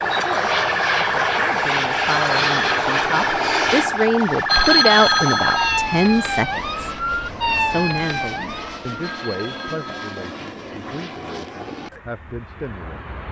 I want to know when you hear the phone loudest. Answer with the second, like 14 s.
5 s.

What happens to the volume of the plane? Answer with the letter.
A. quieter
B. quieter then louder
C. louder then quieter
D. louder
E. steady
A.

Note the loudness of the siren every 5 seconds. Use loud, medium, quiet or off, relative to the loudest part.
loud, loud, off.